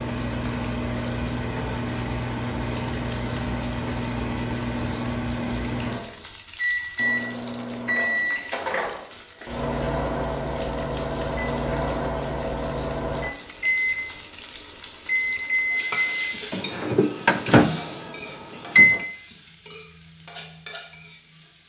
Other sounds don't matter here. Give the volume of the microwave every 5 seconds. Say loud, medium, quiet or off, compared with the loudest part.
medium, medium, medium, loud, off.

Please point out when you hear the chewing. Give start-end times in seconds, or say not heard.
not heard.